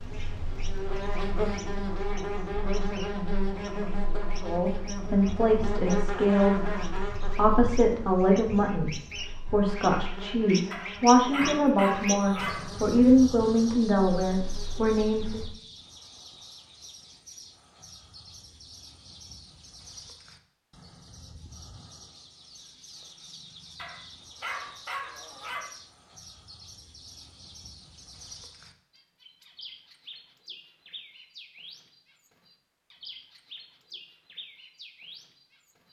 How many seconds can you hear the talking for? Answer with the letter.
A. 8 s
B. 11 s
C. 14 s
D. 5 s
B.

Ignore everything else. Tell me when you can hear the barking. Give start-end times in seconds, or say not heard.
10.7-12.7, 23.8-25.7.